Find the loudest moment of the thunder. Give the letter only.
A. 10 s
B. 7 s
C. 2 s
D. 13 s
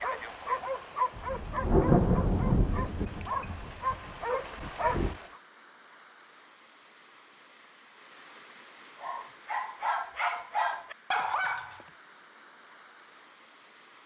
C.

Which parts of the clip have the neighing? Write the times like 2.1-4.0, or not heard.
not heard.